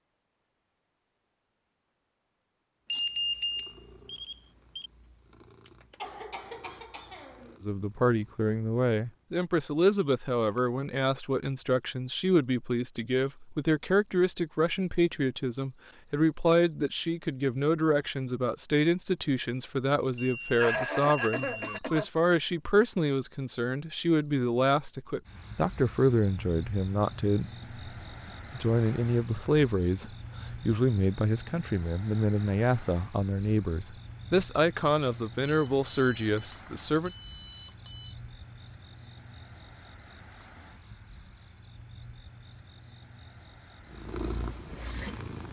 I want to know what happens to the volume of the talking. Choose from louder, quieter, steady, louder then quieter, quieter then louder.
steady.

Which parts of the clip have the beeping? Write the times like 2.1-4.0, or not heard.
2.9-4.9, 20.1-21.8, 35.4-38.1.